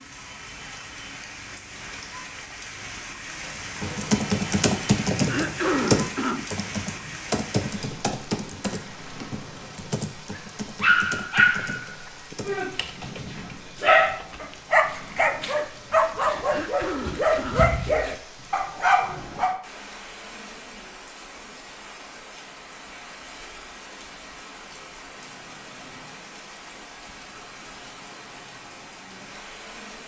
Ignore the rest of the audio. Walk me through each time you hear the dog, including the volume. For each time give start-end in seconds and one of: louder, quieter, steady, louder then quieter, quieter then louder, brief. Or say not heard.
10.3-19.6 steady.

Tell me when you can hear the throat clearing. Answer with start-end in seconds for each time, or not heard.
5.2-6.5, 16.4-17.6.